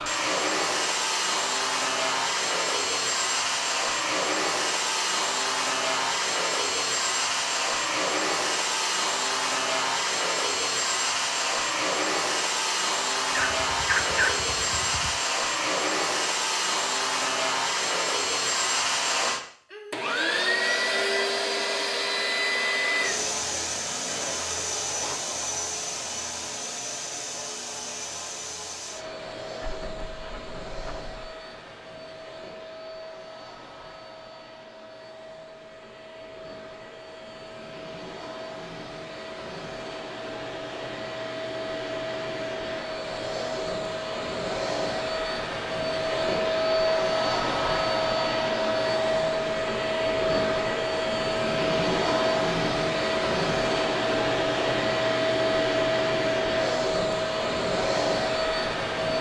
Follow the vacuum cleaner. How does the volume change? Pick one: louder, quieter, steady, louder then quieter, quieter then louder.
quieter then louder.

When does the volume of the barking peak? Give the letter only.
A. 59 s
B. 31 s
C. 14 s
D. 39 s
C.